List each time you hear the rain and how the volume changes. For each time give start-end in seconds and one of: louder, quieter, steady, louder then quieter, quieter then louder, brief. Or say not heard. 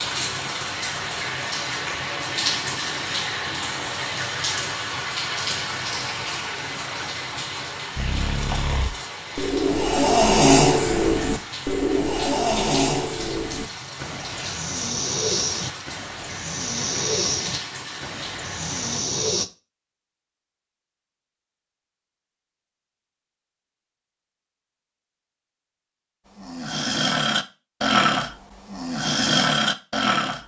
0.0-19.0 quieter.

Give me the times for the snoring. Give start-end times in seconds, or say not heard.
8.0-19.4, 26.4-30.4.